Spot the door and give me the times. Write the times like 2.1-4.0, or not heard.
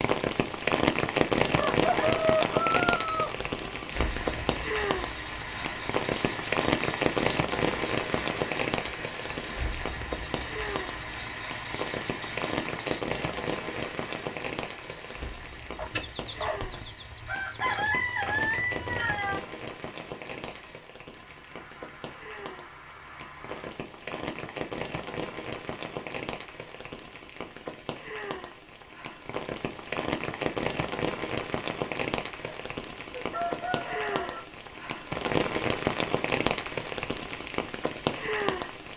not heard.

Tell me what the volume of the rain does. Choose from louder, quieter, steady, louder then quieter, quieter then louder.
quieter then louder.